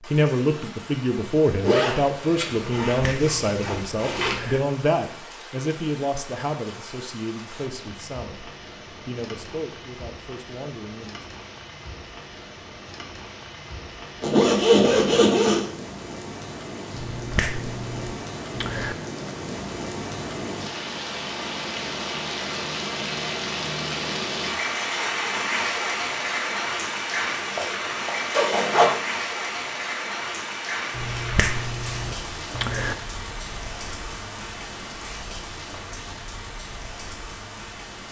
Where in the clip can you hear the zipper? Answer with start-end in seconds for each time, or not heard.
1.6-4.3, 14.2-15.6, 27.6-28.9.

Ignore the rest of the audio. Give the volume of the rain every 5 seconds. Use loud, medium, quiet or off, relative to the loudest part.
quiet, quiet, quiet, medium, loud, loud, medium, medium.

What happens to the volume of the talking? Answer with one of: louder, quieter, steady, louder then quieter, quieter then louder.
quieter.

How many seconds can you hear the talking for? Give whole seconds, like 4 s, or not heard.
11 s.